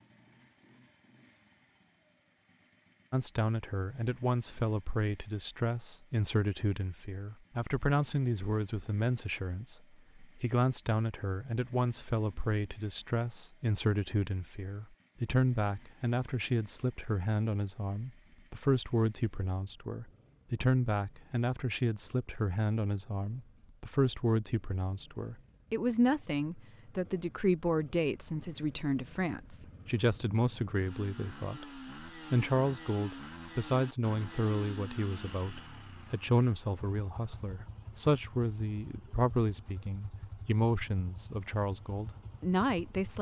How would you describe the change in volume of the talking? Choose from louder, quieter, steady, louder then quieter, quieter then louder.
steady.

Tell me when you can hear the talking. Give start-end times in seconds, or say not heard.
3.1-43.1.